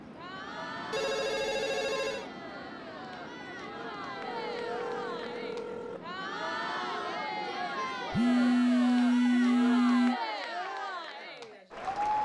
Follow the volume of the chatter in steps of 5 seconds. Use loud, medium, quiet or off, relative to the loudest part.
medium, loud, loud.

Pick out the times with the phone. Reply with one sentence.
You can hear the phone from 0.9 to 2.2 s, from 4.2 to 6.0 s and from 8.1 to 10.2 s.